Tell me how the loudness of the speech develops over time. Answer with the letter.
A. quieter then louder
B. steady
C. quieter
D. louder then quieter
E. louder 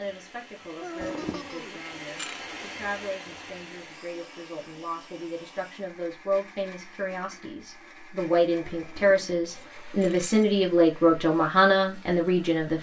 E.